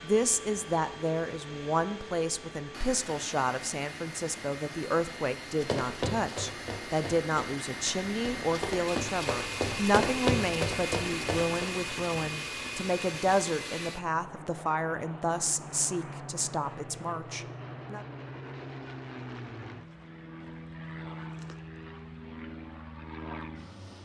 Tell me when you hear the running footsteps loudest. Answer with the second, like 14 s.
10 s.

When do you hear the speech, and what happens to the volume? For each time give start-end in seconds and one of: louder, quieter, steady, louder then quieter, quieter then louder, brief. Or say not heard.
0.0-18.1 steady.